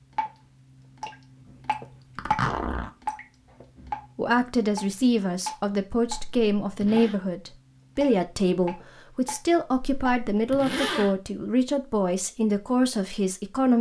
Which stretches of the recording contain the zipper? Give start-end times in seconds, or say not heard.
2.1-2.9, 6.0-7.2, 9.7-11.2.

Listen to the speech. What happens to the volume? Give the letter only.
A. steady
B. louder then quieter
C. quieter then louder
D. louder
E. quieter
A.